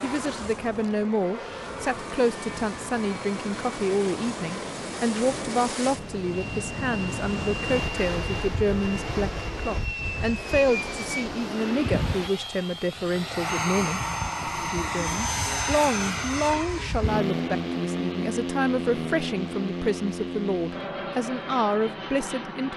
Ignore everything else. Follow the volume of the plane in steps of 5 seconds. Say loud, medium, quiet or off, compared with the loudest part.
medium, medium, loud, loud, medium.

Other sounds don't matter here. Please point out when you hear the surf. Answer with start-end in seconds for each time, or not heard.
0.0-12.3.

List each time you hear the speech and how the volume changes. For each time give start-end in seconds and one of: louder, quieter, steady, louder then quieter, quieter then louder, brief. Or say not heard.
0.0-22.7 steady.